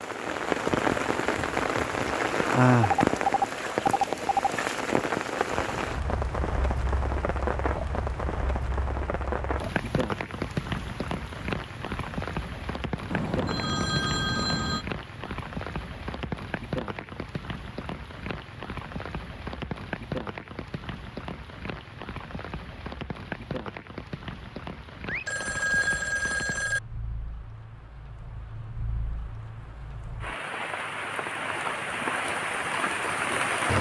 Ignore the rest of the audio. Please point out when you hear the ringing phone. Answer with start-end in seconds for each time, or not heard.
2.8-4.5, 13.1-14.8, 25.1-26.8.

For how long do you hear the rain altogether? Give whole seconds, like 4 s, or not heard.
34 s.